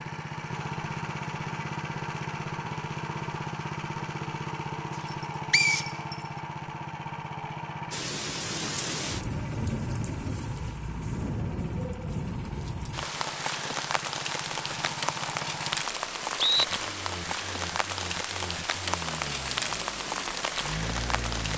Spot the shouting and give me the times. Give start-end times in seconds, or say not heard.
not heard.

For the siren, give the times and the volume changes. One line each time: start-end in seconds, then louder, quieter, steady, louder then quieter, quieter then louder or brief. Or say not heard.
not heard.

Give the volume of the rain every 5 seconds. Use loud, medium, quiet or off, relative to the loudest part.
off, loud, loud, loud, loud.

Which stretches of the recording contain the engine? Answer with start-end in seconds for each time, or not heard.
0.0-21.5.